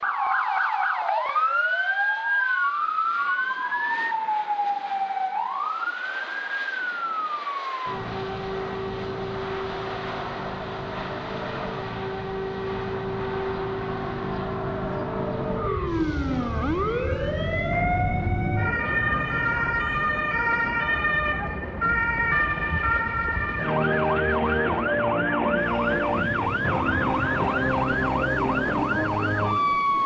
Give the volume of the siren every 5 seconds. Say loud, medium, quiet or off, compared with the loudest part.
loud, medium, medium, loud, loud, loud.